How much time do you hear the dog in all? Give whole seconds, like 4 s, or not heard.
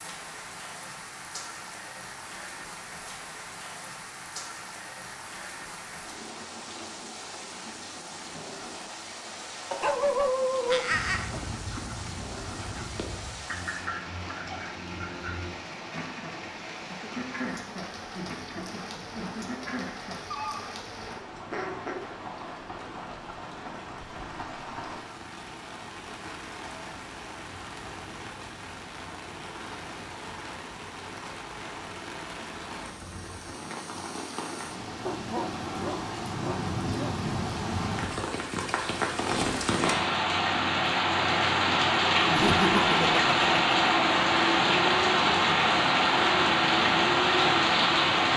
4 s.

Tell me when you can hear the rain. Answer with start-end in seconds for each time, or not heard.
0.0-48.3.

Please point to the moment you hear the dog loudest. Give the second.
10 s.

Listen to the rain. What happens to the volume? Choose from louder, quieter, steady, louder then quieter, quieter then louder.
louder.